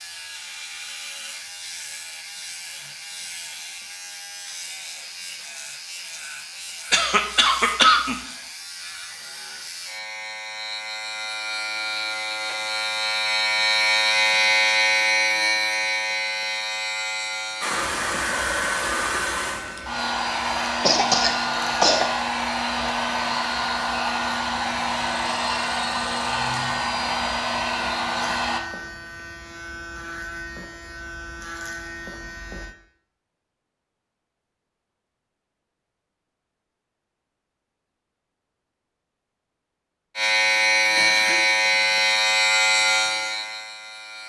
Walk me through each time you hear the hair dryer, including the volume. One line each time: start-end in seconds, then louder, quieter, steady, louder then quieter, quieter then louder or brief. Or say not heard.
17.6-28.6 steady.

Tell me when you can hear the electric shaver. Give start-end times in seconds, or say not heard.
0.0-32.8, 40.1-44.2.